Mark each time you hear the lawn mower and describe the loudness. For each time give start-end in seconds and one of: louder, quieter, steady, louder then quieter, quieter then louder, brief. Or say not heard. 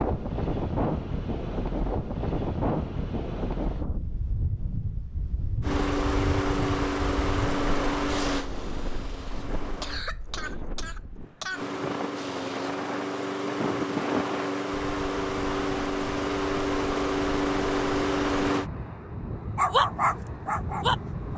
5.6-10.1 quieter
11.5-18.7 louder.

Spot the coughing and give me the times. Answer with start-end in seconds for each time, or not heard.
9.6-11.7.